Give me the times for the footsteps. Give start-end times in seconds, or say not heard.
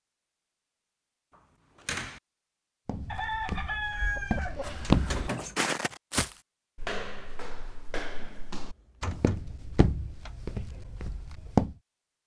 2.9-11.8.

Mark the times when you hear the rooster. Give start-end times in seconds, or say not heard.
3.0-4.8.